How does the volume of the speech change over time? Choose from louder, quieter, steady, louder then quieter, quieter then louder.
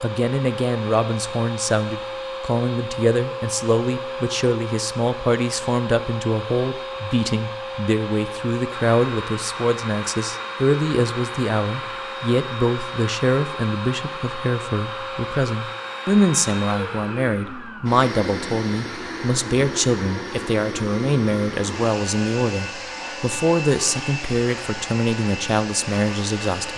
steady.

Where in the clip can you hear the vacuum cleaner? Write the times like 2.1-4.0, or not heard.
0.0-26.7.